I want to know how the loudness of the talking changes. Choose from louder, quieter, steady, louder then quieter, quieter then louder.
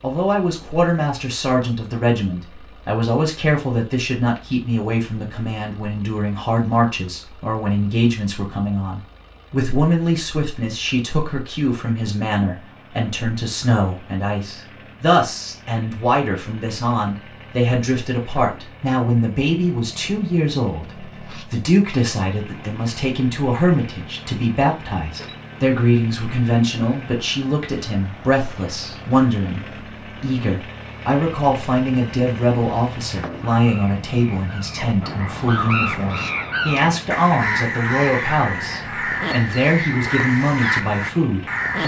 steady.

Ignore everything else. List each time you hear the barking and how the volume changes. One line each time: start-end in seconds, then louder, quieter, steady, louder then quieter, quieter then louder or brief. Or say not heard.
not heard.